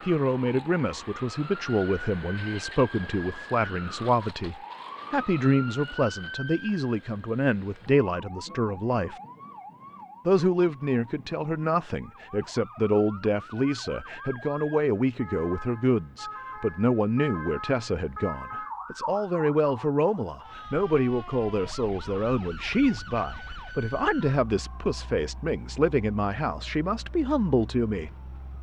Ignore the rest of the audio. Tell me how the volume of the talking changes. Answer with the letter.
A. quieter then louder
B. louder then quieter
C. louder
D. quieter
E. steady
E.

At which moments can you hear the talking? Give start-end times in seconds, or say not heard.
0.0-9.2, 10.2-28.1.